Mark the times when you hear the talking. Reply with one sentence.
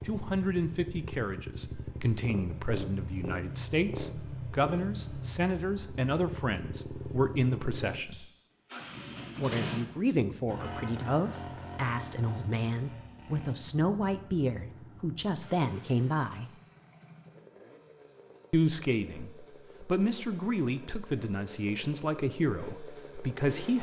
The talking can be heard from 0.0 to 8.2 s, from 9.3 to 16.5 s and from 18.5 to 23.7 s.